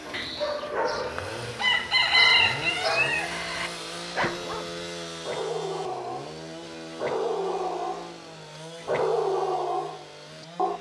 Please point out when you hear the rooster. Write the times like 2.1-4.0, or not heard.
0.1-3.7.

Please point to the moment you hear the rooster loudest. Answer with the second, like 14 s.
2 s.